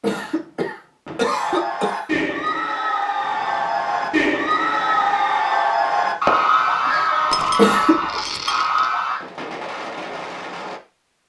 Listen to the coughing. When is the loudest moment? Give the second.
8 s.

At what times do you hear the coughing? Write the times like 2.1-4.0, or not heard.
0.0-2.0, 7.5-8.2.